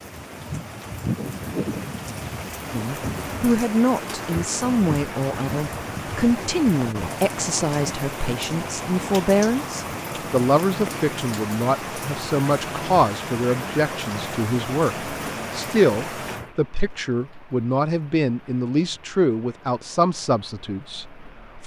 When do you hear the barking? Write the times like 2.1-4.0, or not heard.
not heard.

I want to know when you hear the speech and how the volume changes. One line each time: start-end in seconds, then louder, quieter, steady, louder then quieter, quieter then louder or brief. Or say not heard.
2.7-21.6 steady.